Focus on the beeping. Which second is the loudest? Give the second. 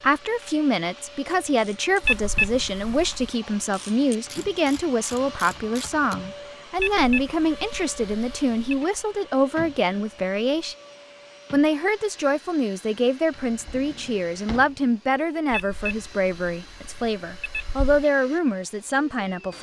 2 s.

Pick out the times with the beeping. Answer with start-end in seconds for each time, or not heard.
2.0-3.3, 6.8-8.8, 15.5-18.1.